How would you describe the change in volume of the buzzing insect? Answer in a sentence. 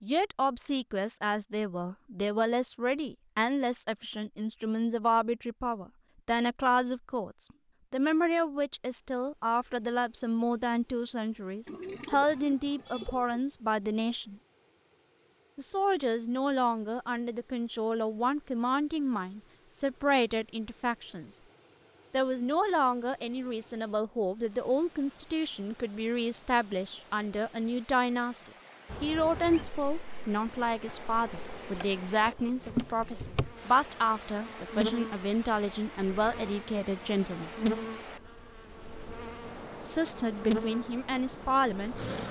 The volume of the buzzing insect goes up.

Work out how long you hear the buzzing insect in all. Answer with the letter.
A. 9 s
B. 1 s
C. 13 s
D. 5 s
C.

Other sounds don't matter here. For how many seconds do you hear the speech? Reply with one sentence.
You can hear the speech for 38 seconds altogether.